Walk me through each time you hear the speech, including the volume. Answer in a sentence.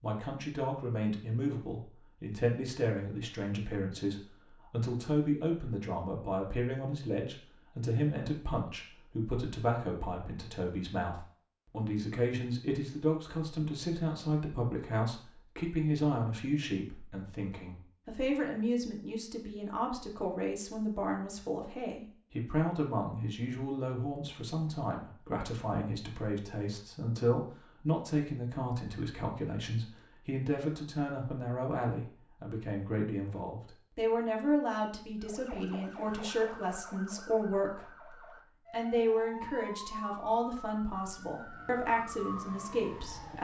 The speech can be heard from 0.0 to 43.3 s, at a steady volume.